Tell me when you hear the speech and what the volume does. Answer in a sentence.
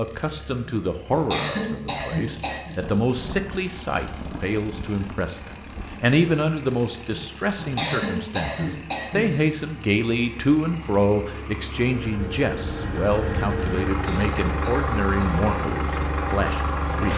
The speech can be heard from 0.0 to 17.1 s, at a steady volume.